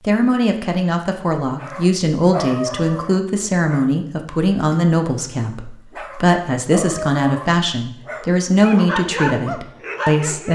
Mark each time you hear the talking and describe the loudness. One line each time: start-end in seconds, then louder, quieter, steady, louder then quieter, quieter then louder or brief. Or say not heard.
0.0-10.5 steady.